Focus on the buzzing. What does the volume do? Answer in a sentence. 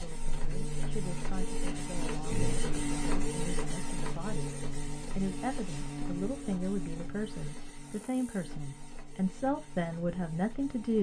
The loudness of the buzzing goes down.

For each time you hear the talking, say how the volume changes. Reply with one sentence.
You can hear the talking from 0.0 to 10.9 s, getting louder.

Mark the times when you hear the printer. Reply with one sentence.
The printer can be heard from 0.0 to 10.9 s.